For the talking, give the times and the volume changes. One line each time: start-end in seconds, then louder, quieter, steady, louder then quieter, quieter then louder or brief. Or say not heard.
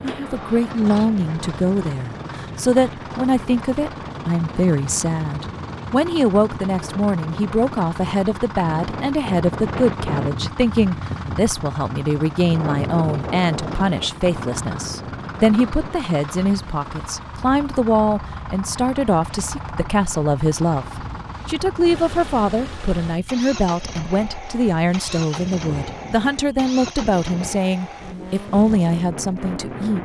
0.0-30.0 steady.